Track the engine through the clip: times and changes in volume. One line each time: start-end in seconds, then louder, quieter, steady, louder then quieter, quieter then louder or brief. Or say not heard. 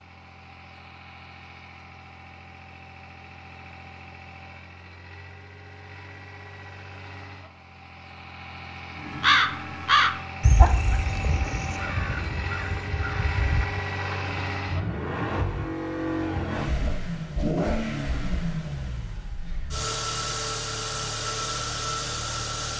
0.0-22.7 louder.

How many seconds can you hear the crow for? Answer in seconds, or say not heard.
5 s.